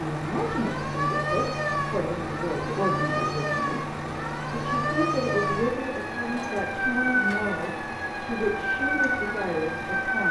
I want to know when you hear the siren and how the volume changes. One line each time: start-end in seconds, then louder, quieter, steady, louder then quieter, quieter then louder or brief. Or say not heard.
0.0-10.2 steady.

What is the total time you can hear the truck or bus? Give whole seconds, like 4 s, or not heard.
10 s.